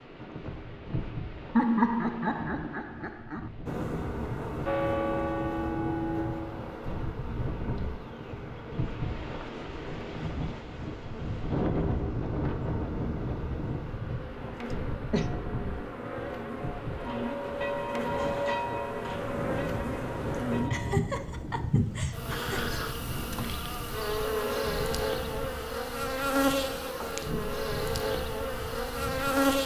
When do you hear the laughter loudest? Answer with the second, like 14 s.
2 s.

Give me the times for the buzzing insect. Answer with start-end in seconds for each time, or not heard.
3.6-29.6.